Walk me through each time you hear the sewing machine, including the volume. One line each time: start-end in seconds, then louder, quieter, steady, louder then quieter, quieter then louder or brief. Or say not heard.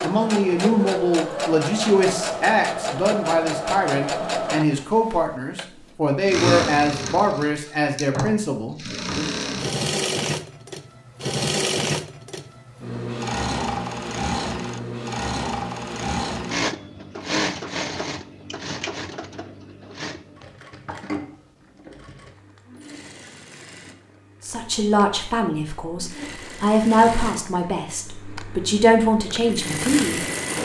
0.0-30.5 quieter.